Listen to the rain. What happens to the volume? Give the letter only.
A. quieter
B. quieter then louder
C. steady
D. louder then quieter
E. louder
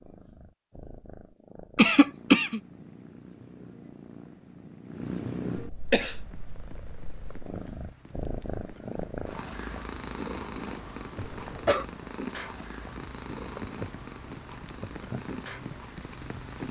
E.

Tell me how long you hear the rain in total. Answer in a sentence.
You can hear the rain for 11 seconds altogether.